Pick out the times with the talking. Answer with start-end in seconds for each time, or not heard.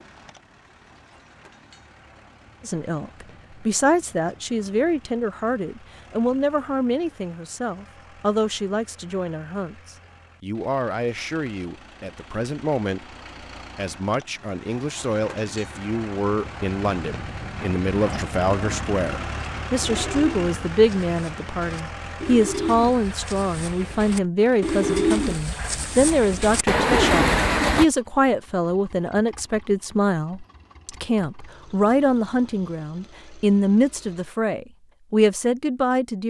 2.6-13.2, 13.8-36.2.